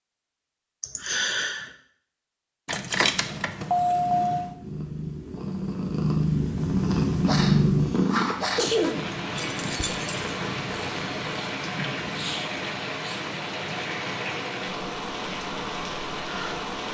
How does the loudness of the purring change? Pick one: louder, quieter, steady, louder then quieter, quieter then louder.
louder then quieter.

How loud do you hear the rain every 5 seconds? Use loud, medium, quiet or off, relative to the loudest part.
off, loud, loud, loud.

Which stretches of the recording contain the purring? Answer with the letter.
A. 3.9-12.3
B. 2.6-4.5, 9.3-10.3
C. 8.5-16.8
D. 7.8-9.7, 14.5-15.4
A.